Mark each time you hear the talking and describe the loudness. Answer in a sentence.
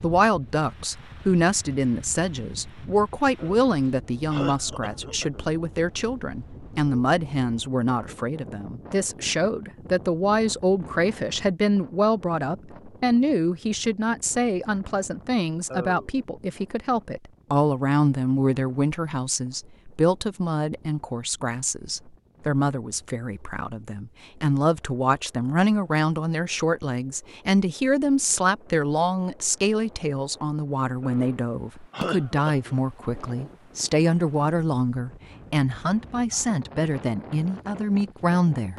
You can hear the talking from 0.0 to 38.7 s, at a steady volume.